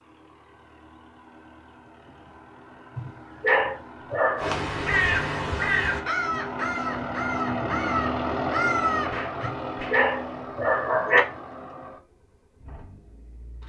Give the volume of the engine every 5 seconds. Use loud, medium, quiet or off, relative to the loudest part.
quiet, loud, medium.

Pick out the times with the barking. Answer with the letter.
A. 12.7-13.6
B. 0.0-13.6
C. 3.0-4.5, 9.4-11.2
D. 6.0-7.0
C.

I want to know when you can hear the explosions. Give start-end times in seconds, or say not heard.
9.1-10.0.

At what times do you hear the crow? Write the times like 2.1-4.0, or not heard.
4.3-9.5.